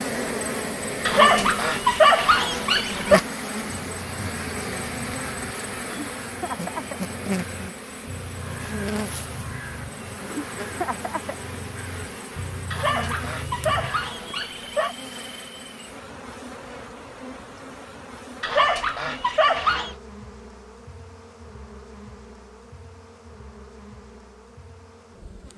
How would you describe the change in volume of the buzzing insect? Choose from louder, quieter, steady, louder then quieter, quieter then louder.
quieter.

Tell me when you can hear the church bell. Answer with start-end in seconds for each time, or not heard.
not heard.